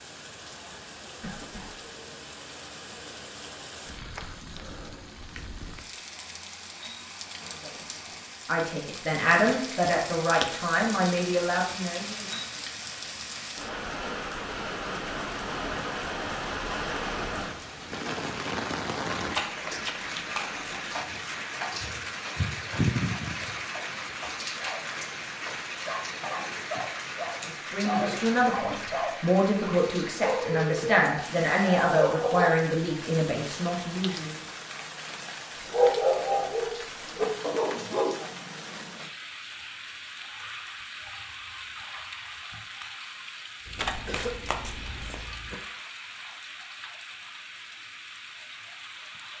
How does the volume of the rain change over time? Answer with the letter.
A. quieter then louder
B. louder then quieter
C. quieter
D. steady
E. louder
B.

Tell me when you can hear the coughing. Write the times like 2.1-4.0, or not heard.
1.2-1.9, 27.8-28.8, 43.6-45.5.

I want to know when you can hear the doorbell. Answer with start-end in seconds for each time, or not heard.
not heard.